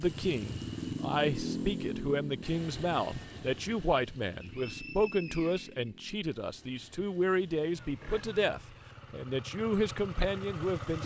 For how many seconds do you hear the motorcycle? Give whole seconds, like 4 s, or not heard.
11 s.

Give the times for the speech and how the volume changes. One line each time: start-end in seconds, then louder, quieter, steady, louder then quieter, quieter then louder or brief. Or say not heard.
0.0-11.0 steady.